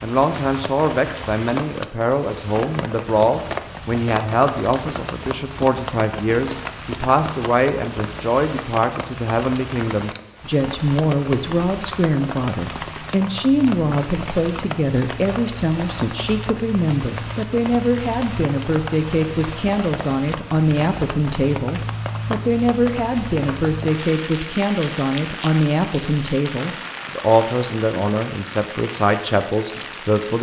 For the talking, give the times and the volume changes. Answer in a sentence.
The talking can be heard from 0.0 to 30.3 s, at a steady volume.